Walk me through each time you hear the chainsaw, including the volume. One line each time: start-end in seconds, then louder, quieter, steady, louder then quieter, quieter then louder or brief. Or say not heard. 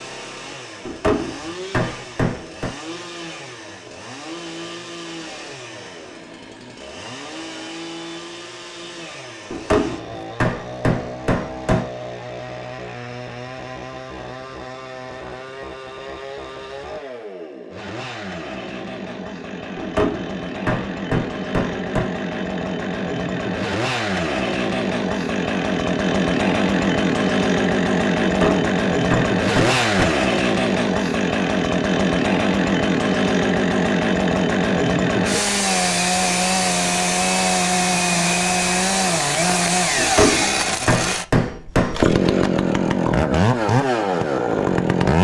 0.0-45.1 louder.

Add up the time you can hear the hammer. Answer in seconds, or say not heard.
11 s.